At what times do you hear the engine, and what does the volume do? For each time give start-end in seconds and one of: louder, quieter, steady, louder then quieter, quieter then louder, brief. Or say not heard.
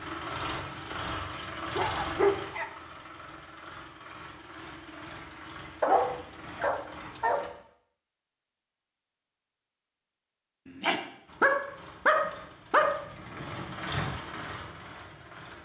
0.0-7.5 quieter
11.2-15.5 louder then quieter.